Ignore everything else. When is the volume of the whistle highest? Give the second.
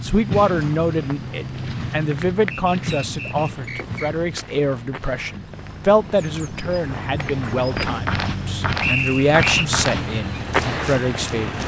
9 s.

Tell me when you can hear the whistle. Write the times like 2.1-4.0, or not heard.
2.5-4.1, 8.8-9.7.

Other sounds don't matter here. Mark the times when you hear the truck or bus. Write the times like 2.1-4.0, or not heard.
0.0-11.6.